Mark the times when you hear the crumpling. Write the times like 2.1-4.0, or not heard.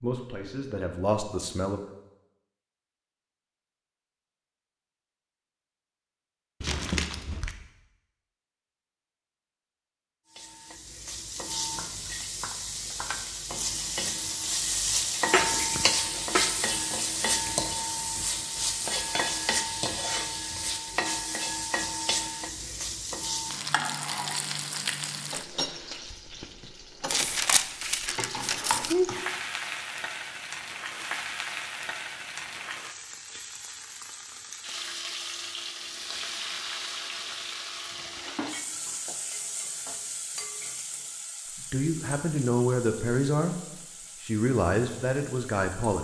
6.6-7.5, 27.1-28.9.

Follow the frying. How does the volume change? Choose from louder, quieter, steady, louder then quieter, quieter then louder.
quieter.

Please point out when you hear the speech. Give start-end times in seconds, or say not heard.
0.0-1.8, 41.7-43.5, 44.2-45.9.